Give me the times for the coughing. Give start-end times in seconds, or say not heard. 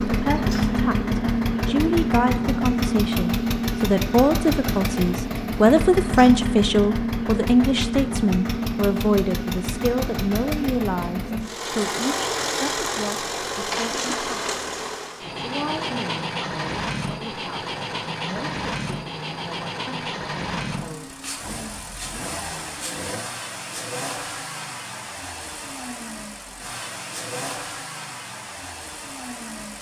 not heard.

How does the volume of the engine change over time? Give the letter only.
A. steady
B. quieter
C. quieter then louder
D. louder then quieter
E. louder
B.